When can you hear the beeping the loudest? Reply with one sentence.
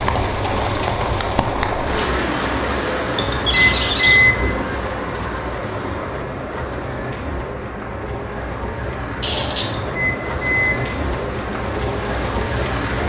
The volume of the beeping peaks at 4 seconds.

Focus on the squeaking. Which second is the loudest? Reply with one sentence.
The loudest moment of the squeaking is at 4 seconds.